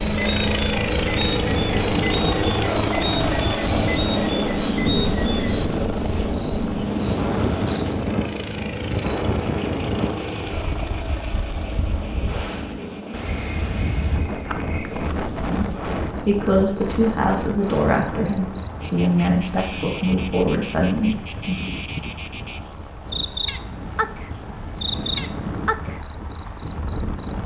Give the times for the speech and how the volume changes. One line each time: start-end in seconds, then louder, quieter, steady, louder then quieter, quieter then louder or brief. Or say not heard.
15.7-21.7 steady.